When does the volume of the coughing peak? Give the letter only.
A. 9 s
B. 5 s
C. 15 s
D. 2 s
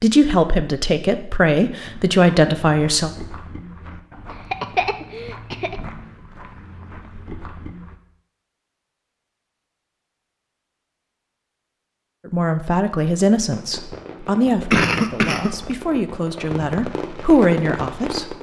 C.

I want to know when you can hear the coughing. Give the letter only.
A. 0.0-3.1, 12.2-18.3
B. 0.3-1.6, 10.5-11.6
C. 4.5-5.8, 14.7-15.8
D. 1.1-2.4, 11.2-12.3
C.